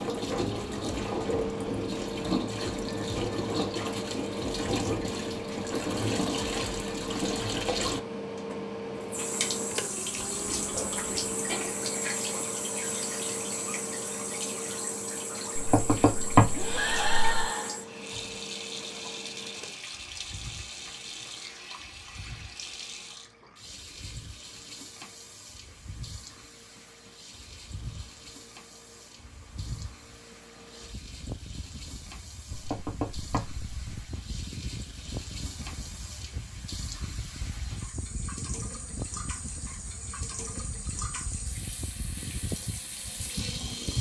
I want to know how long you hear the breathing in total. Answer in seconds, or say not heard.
2 s.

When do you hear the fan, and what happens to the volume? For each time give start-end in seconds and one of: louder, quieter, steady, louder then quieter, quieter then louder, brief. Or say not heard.
0.0-43.9 quieter then louder.